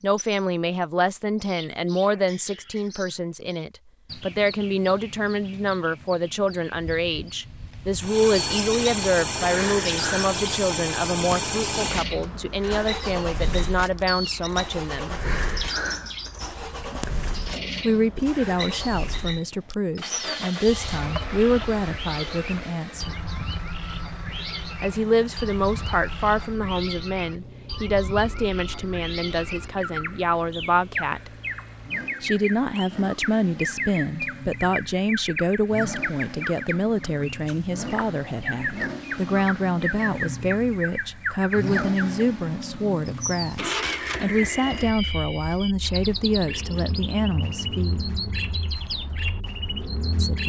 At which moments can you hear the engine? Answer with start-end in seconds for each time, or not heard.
8.0-50.4.